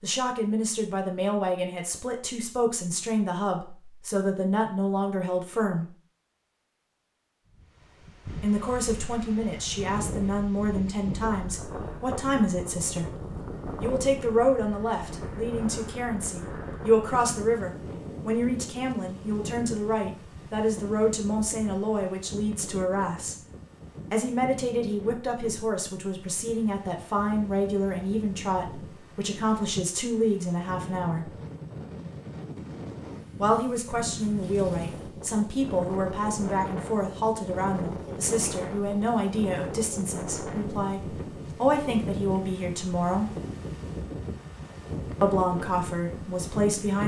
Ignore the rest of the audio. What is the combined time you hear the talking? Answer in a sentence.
You can hear the talking for 39 seconds altogether.